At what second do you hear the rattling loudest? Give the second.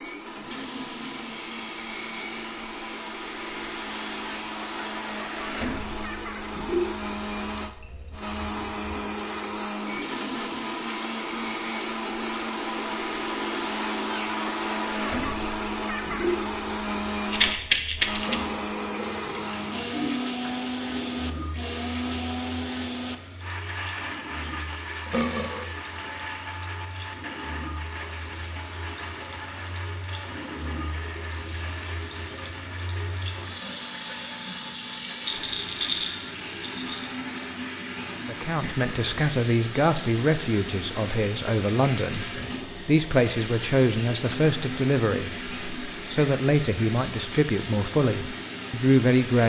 18 s.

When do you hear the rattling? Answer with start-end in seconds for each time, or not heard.
17.3-18.4, 35.2-37.1.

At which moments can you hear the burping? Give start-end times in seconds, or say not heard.
18.2-19.4, 25.1-25.7.